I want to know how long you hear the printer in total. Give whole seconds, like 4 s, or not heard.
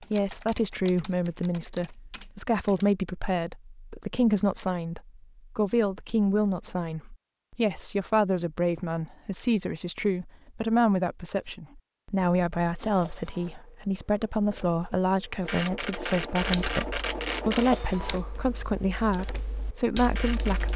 8 s.